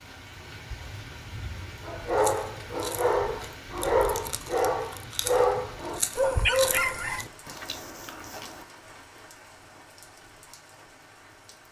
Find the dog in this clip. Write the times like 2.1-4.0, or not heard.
1.9-7.2.